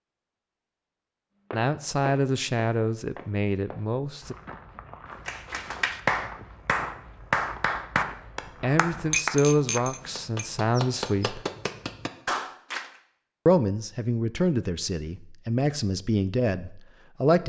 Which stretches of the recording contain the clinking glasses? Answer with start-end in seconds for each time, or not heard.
9.1-11.3.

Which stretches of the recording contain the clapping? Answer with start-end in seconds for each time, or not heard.
5.2-12.8.